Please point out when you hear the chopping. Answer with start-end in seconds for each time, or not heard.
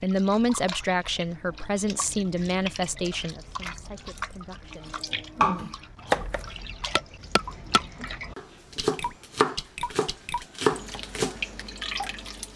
5.4-11.7.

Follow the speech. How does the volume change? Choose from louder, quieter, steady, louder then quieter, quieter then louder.
quieter.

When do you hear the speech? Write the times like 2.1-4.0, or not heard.
0.0-5.0.